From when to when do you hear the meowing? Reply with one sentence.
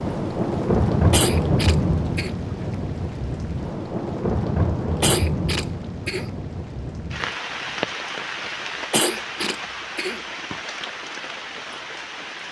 The meowing can't be heard in this clip.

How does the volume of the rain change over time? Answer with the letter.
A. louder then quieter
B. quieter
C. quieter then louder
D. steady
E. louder
B.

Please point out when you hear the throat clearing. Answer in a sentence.
The throat clearing can be heard from 1.1 to 2.3 s, from 5.0 to 6.3 s and from 8.9 to 10.2 s.